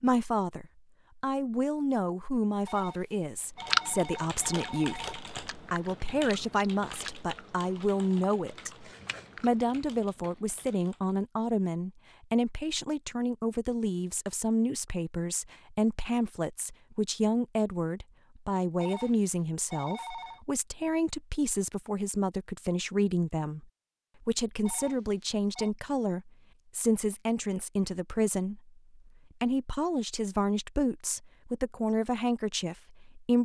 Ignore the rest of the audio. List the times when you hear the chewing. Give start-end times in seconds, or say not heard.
3.5-9.8.